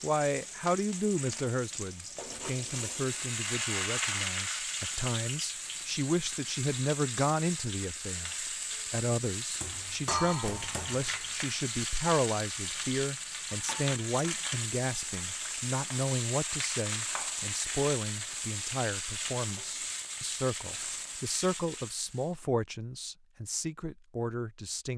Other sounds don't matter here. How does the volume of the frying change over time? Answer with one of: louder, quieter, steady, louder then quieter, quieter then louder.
steady.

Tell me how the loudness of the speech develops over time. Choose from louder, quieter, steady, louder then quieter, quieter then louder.
steady.